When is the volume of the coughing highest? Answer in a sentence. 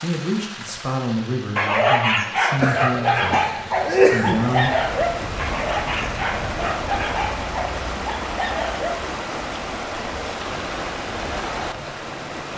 The volume of the coughing peaks at 4 seconds.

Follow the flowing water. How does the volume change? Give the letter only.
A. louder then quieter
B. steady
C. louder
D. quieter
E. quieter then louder
C.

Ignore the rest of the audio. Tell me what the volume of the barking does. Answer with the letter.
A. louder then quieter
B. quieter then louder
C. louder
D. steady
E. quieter
E.